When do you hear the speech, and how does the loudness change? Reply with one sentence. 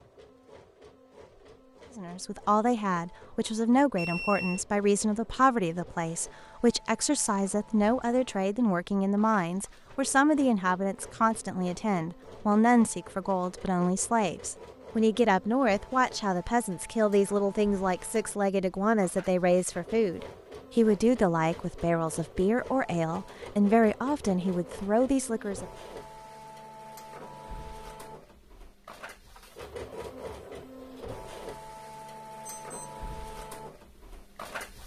You can hear the speech from 1.9 to 25.6 s, at a steady volume.